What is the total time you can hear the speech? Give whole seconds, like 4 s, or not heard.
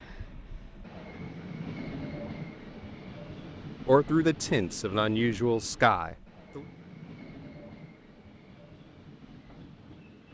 3 s.